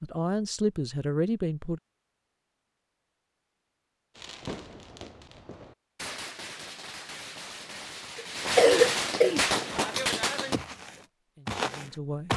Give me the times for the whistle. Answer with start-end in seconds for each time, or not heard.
not heard.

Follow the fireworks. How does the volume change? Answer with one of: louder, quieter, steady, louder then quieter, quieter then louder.
louder.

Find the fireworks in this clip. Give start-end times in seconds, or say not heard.
4.2-10.6.